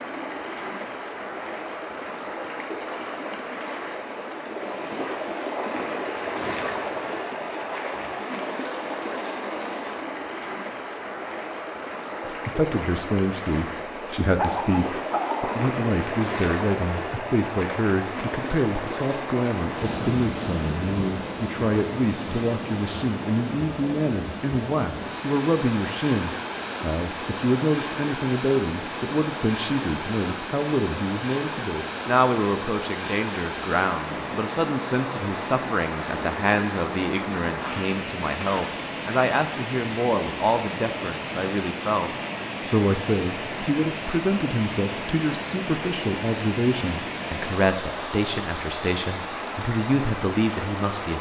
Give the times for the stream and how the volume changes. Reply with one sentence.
The stream can be heard from 0.0 to 51.1 s, at a steady volume.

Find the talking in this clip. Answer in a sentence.
You can hear the talking from 12.2 to 51.1 s.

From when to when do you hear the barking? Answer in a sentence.
You can hear the barking from 14.1 to 15.6 s.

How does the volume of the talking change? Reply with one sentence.
The volume of the talking stays about the same.